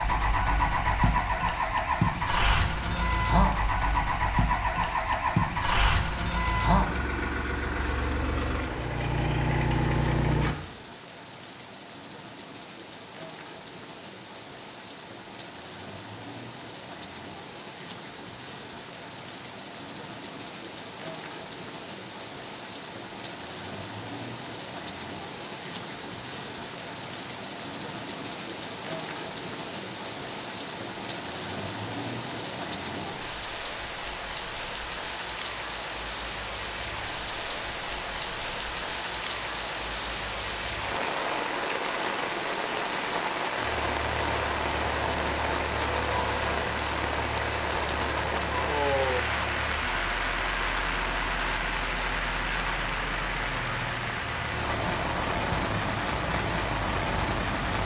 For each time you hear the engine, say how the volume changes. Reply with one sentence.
You can hear the engine from 0.0 to 10.6 s, at a steady volume; and from 43.5 to 57.8 s, at a steady volume.